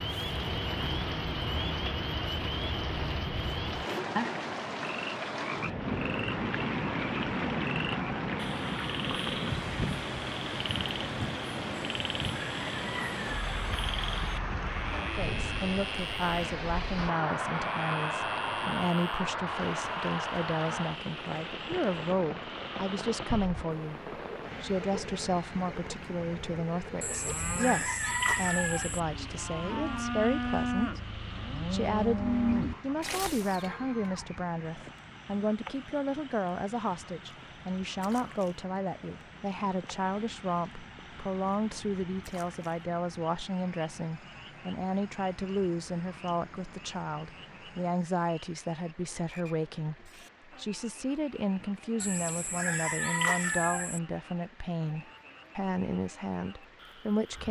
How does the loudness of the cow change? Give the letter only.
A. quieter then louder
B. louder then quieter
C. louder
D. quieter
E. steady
C.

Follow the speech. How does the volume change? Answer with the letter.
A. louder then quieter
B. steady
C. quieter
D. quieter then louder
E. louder
B.